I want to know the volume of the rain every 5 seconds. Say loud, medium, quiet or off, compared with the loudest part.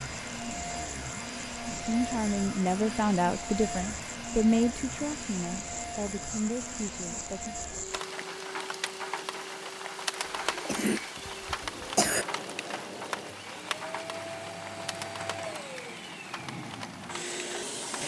medium, loud, loud, medium.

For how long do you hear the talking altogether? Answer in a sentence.
The talking can be heard for 6 seconds in total.